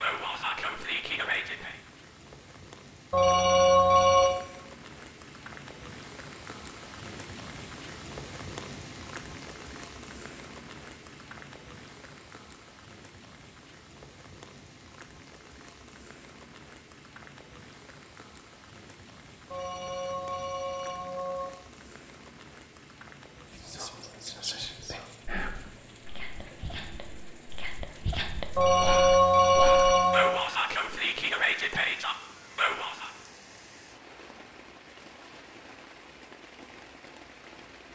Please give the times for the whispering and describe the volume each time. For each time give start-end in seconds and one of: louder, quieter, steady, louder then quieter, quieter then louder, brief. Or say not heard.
0.0-1.8 brief
23.6-33.1 quieter then louder.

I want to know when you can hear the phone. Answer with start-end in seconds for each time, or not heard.
3.1-4.3, 19.5-21.5, 28.6-30.4.